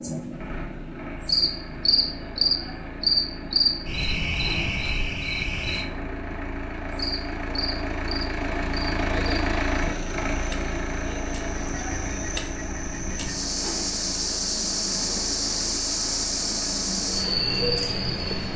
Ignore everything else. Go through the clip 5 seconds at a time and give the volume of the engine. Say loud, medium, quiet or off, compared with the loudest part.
medium, loud, loud, medium.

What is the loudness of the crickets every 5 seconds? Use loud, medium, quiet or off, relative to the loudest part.
loud, medium, medium, loud.